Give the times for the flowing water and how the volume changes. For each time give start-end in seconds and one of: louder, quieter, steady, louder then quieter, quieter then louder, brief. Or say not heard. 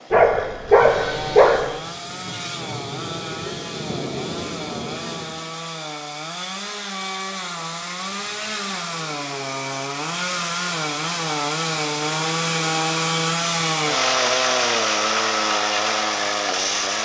not heard.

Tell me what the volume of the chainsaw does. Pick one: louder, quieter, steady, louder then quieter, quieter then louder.
louder.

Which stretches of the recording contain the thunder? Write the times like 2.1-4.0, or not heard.
0.8-5.5.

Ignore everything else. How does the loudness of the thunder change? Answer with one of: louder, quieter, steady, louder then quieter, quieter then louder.
louder.